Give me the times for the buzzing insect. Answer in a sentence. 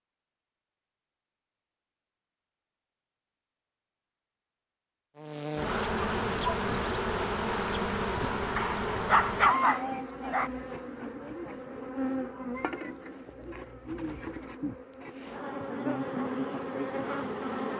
You can hear the buzzing insect from 5.2 to 17.7 s.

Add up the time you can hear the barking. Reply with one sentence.
The barking can be heard for 2 seconds in total.